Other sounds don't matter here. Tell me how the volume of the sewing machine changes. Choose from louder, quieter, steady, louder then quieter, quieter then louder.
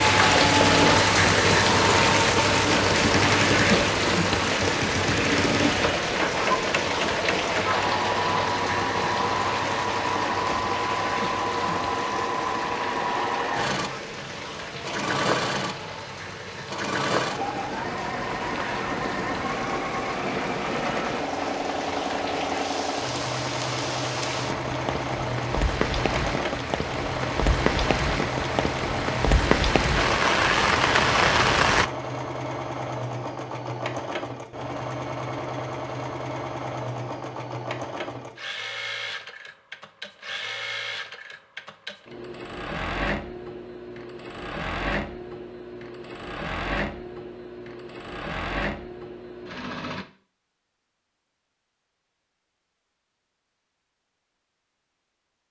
quieter.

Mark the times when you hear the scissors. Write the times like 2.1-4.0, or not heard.
not heard.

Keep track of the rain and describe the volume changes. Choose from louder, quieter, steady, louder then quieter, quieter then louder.
quieter then louder.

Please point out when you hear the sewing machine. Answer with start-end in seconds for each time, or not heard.
0.1-50.0.